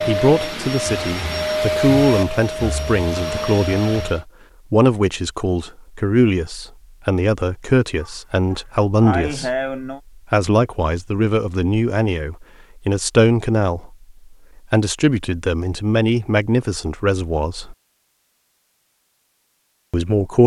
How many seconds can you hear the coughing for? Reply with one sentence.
You can hear the coughing for 2 seconds altogether.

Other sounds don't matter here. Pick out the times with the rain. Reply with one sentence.
You can't hear the rain here.